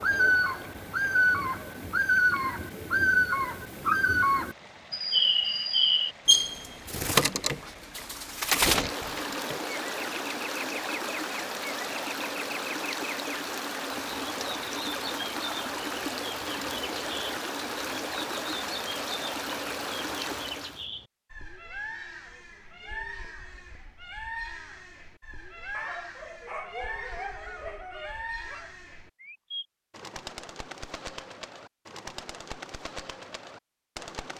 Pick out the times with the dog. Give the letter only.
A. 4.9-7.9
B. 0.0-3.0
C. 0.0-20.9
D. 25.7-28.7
D.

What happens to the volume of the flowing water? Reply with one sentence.
The loudness of the flowing water goes up.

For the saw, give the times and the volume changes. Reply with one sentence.
You can't hear the saw here.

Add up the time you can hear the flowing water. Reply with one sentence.
The flowing water can be heard for 21 seconds in total.